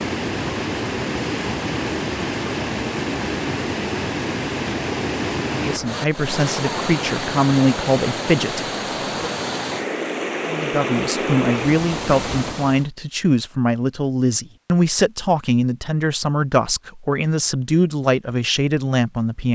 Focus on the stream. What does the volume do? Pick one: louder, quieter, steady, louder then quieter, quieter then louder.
steady.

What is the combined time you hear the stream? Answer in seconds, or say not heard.
13 s.